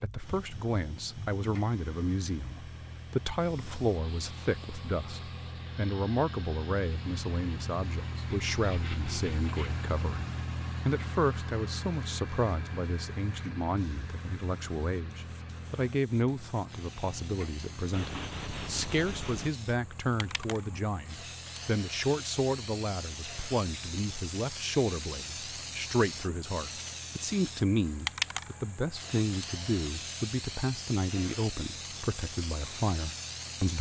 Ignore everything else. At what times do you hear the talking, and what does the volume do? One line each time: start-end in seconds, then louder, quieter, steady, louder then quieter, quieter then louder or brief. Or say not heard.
0.0-33.7 steady.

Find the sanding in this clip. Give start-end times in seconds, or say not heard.
8.5-9.8, 17.9-19.6.